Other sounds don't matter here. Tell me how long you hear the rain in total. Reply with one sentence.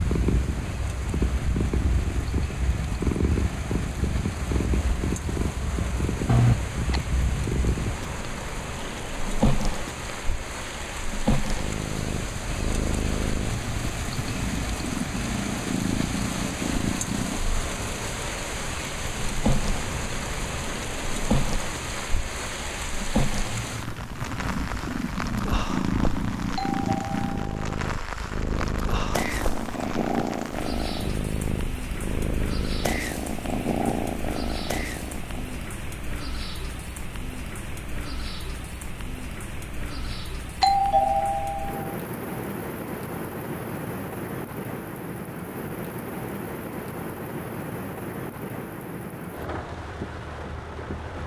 You can hear the rain for 51 seconds altogether.